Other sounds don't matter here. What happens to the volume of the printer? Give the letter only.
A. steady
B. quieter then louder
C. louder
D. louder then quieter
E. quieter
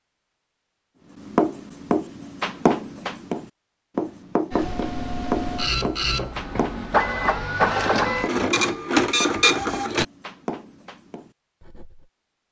C.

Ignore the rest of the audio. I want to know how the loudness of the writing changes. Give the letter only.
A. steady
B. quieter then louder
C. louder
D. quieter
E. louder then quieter
D.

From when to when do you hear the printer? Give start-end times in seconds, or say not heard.
4.5-10.1.